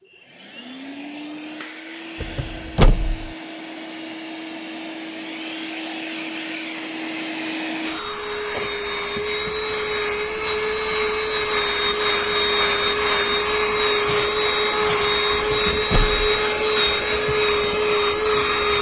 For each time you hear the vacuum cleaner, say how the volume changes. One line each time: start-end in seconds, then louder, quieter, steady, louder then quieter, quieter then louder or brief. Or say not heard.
0.0-18.7 louder.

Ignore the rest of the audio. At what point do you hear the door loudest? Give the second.
3 s.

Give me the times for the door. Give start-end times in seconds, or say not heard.
2.2-3.3, 15.3-16.3.